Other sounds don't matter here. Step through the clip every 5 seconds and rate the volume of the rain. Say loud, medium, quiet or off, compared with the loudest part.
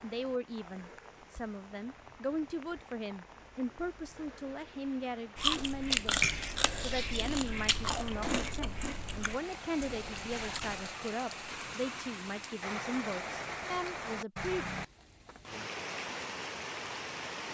quiet, medium, loud, loud.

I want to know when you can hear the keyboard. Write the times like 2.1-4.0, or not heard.
not heard.